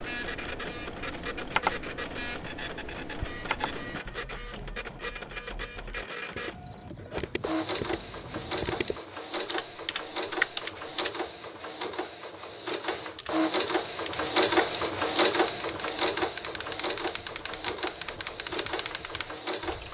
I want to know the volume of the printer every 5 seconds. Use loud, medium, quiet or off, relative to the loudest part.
medium, medium, loud, loud.